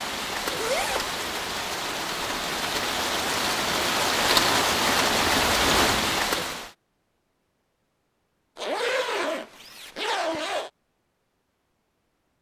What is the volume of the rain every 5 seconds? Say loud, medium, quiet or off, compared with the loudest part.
loud, loud, off.